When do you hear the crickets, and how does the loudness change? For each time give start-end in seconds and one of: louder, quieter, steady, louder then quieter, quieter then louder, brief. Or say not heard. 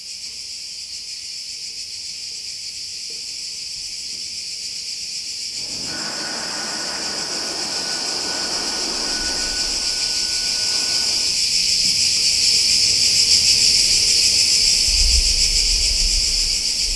0.0-16.9 louder.